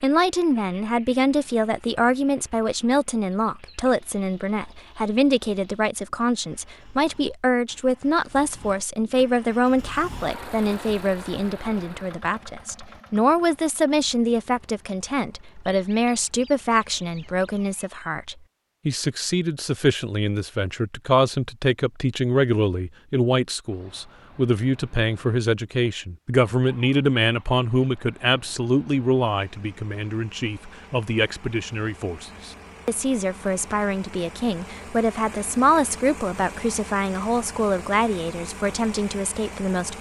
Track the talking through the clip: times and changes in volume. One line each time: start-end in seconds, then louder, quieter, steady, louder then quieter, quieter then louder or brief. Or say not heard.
0.0-39.9 steady.